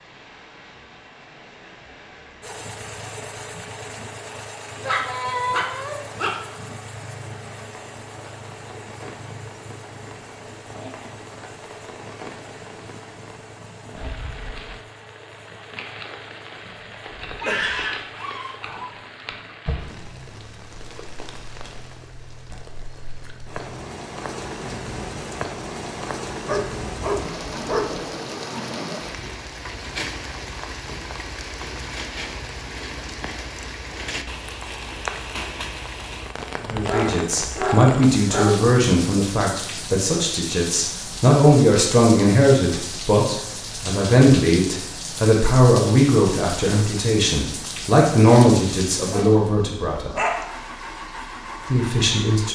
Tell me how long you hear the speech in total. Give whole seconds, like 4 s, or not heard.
14 s.